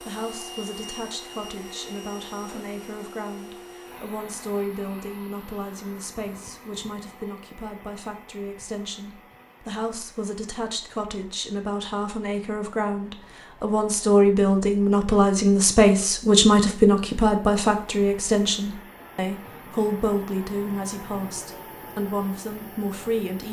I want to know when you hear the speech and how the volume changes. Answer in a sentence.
You can hear the speech from 0.0 to 23.4 s, getting louder then quieter.